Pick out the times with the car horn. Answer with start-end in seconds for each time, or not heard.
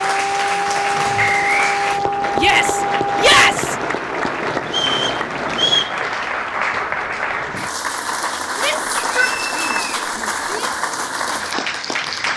not heard.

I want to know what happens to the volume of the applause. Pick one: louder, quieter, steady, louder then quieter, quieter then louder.
steady.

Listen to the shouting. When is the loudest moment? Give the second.
3 s.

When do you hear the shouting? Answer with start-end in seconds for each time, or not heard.
2.4-3.8, 8.6-10.7.